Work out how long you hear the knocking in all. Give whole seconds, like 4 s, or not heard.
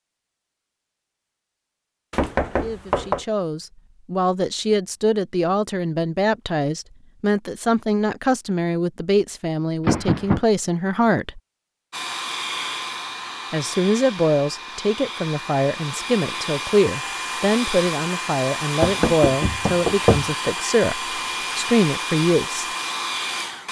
3 s.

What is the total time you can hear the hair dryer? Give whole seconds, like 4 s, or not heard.
12 s.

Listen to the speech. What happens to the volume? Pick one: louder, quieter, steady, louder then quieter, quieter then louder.
steady.